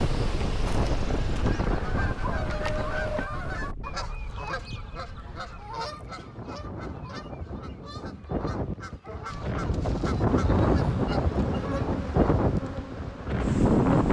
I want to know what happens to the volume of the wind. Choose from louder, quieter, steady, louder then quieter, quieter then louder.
quieter then louder.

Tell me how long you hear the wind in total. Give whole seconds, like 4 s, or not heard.
14 s.